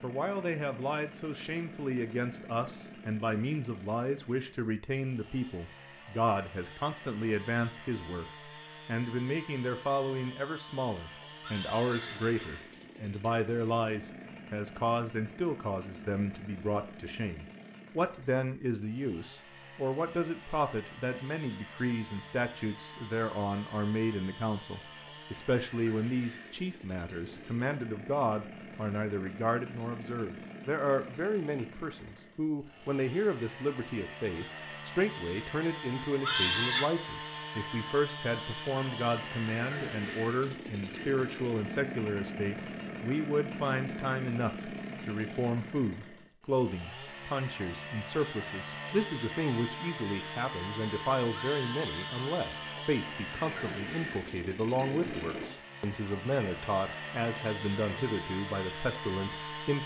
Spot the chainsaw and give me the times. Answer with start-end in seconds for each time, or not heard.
0.0-59.8.